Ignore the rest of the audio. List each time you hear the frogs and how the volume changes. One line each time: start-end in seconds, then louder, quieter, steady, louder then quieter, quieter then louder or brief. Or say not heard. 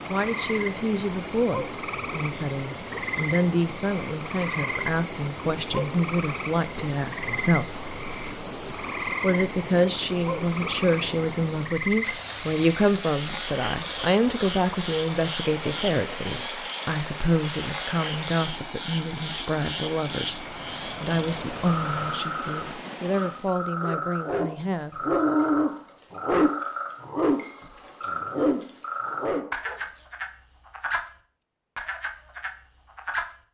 0.0-33.4 steady.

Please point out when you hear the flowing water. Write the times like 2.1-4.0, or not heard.
0.0-23.6.